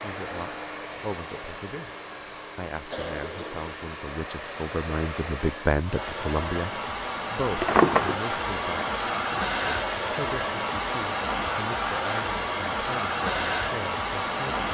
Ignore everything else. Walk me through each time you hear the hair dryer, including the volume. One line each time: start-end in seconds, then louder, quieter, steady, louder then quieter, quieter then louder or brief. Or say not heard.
0.0-14.7 louder.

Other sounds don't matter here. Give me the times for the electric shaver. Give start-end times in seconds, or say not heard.
not heard.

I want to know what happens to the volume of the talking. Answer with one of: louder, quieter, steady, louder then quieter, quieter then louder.
louder then quieter.